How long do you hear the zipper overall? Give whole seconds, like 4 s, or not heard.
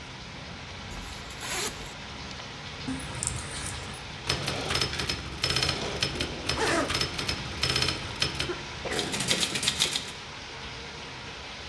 2 s.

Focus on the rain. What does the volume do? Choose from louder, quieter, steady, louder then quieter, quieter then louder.
steady.